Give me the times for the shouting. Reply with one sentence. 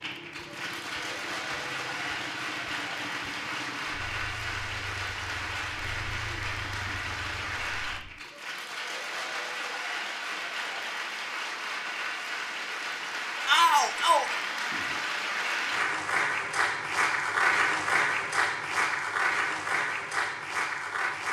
The shouting can be heard from 13.4 to 14.4 s.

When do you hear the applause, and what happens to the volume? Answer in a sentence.
You can hear the applause from 0.0 to 21.2 s, getting louder.